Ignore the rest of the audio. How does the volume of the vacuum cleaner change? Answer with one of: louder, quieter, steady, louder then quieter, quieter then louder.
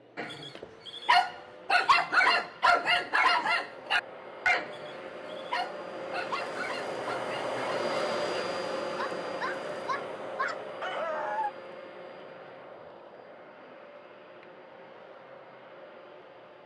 louder then quieter.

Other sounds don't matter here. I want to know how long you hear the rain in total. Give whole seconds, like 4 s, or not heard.
not heard.